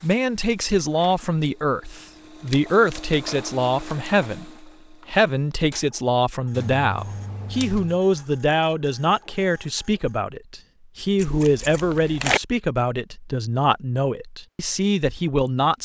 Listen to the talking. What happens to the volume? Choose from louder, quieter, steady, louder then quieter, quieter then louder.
steady.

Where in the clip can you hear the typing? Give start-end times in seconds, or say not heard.
not heard.